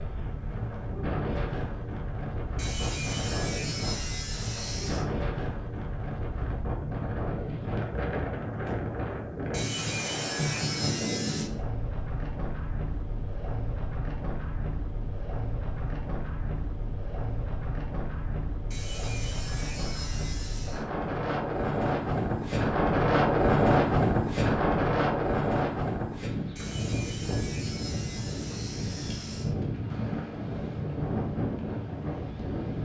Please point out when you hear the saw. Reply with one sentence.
The saw can be heard from 2.5 to 5.0 s, from 9.5 to 11.5 s, from 18.7 to 20.9 s and from 26.6 to 29.6 s.